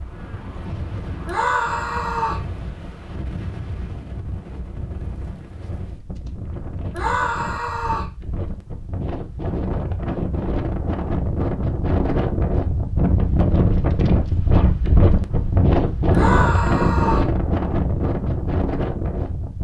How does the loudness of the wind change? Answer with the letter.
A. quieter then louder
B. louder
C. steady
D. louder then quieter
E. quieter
B.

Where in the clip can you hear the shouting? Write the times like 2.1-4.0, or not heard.
1.2-2.5, 6.9-8.1, 16.1-17.3.